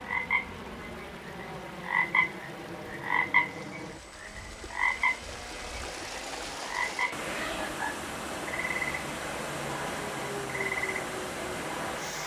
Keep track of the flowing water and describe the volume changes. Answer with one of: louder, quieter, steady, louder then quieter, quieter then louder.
louder.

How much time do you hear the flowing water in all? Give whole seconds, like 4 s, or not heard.
12 s.